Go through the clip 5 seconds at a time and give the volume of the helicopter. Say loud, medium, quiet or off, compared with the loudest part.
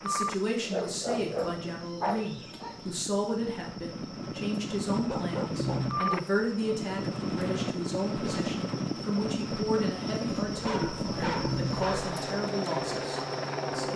medium, loud, loud.